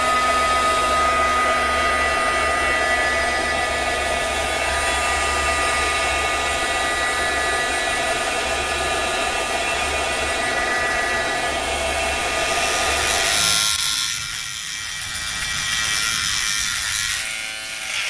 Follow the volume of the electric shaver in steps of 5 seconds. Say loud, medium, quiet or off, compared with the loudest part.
off, off, loud, loud.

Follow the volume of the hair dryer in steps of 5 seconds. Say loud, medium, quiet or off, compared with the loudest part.
loud, loud, loud, off.